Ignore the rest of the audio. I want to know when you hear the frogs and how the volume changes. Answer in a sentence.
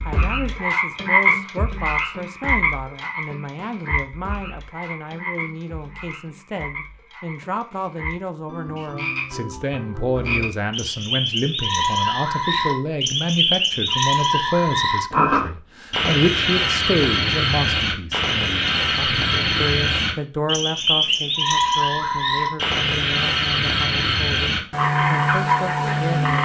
You can hear the frogs from 0.0 to 26.3 s, getting quieter then louder.